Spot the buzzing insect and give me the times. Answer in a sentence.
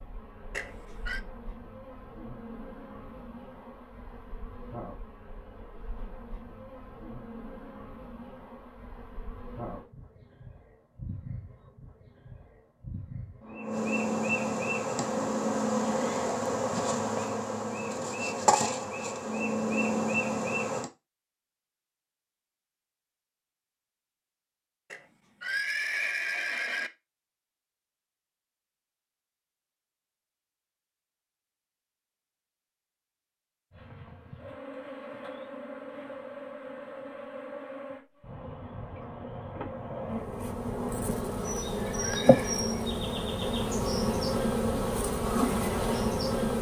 You can hear the buzzing insect from 0.0 to 20.9 s and from 33.7 to 46.5 s.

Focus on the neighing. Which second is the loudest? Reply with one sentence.
The volume of the neighing peaks at 26 seconds.